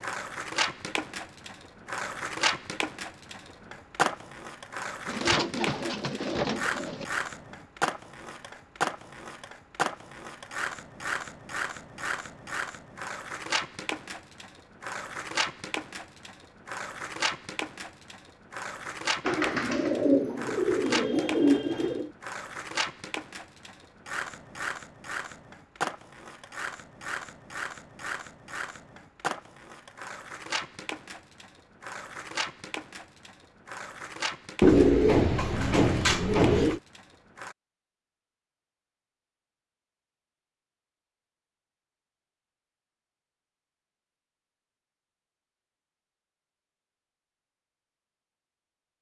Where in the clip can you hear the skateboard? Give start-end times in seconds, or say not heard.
0.0-37.5.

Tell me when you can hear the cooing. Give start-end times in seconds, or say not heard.
5.0-7.0, 19.2-22.1, 34.6-36.8.